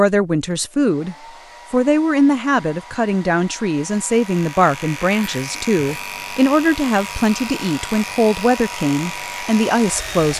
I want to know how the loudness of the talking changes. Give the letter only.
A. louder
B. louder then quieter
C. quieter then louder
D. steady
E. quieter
D.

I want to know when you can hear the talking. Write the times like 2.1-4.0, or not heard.
0.0-10.3.